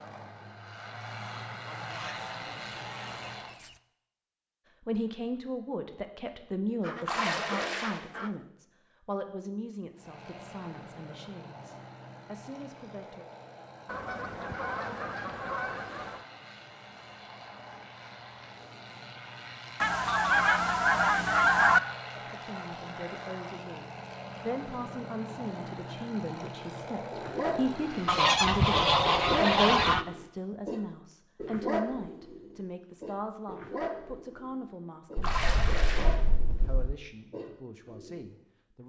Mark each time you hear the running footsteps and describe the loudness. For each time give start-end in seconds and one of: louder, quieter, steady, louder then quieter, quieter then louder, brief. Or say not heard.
not heard.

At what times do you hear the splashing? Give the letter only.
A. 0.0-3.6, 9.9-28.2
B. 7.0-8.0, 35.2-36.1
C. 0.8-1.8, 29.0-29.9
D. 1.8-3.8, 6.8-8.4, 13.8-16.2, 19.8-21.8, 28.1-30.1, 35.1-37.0
B.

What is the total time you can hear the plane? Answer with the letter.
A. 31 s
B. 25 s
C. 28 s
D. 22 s
D.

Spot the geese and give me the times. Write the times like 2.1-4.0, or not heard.
1.8-3.8, 6.8-8.4, 13.8-16.2, 19.8-21.8, 28.1-30.1, 35.1-37.0.